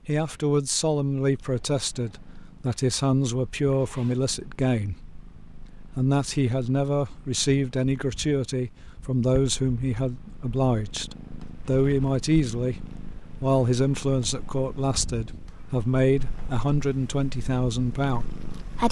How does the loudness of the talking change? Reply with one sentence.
The loudness of the talking stays about the same.